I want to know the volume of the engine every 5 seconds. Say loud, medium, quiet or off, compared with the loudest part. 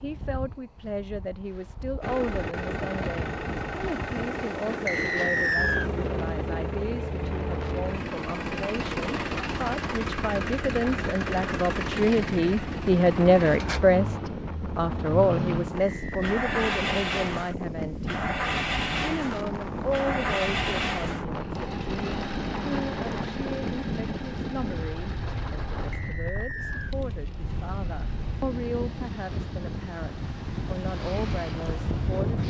loud, loud, loud, loud, loud, quiet, off.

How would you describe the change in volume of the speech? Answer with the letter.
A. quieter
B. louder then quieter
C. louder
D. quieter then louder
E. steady
B.